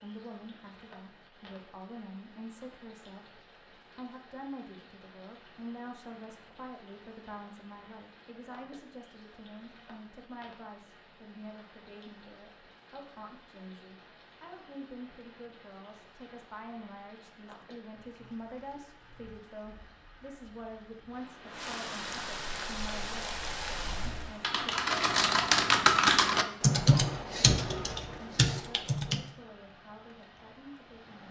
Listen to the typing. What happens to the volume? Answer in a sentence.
The loudness of the typing goes up, then down.